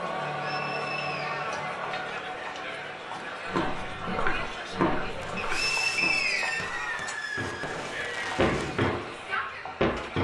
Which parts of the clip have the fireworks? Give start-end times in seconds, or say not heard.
3.9-8.9.